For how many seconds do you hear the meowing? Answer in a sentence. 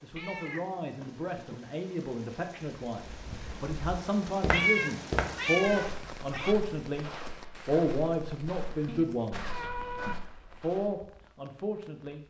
You can hear the meowing for 5 seconds altogether.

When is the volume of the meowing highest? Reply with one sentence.
The volume of the meowing peaks at 5 seconds.